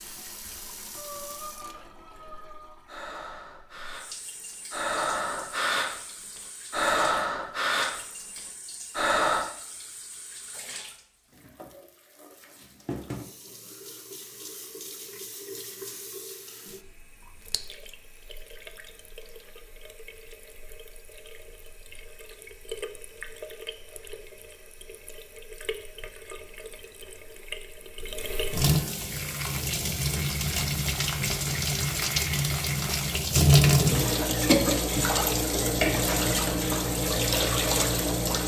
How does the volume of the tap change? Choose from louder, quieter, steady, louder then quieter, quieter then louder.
louder.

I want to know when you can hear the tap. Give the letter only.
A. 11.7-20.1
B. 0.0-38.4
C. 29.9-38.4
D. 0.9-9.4
B.